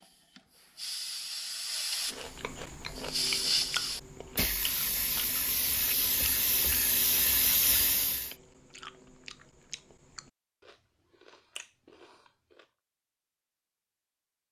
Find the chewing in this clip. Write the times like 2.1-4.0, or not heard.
2.1-12.7.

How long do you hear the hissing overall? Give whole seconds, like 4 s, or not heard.
8 s.